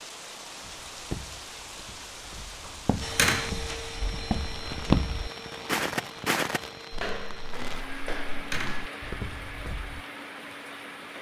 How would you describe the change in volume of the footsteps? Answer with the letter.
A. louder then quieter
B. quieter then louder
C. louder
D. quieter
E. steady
A.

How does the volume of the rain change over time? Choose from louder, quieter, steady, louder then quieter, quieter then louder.
steady.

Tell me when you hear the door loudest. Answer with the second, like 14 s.
3 s.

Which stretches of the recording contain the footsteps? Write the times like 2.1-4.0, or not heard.
0.6-10.0.